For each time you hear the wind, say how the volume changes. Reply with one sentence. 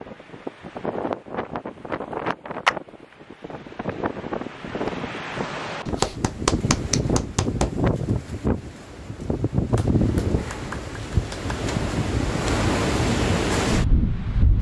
You can hear the wind from 0.0 to 14.5 s, getting louder.